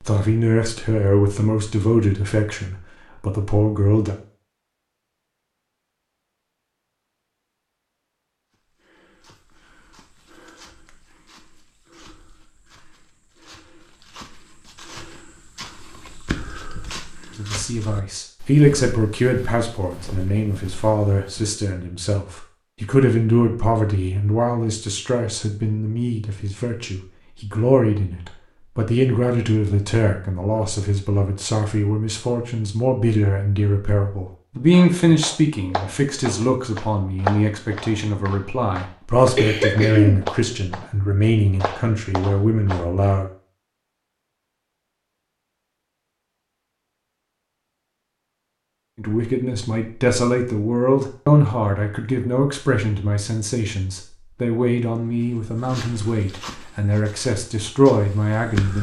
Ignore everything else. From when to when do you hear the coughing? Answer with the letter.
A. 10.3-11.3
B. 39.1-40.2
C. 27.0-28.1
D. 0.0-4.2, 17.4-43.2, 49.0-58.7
B.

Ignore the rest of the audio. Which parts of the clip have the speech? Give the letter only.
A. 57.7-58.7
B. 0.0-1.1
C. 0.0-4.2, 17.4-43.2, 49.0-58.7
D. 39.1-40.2
C.